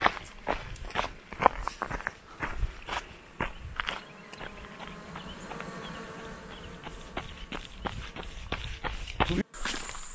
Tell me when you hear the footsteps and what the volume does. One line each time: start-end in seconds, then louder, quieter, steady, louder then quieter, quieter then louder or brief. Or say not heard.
0.0-10.1 quieter then louder.